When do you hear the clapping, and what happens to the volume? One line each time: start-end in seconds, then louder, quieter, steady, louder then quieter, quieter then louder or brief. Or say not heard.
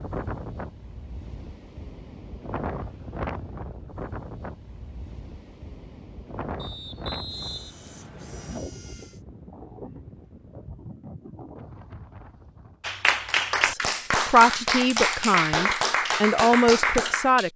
12.8-17.5 steady.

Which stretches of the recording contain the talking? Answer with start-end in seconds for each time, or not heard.
13.6-17.5.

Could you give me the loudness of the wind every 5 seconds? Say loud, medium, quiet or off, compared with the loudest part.
loud, loud, medium, off.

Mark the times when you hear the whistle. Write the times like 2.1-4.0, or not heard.
6.5-8.6.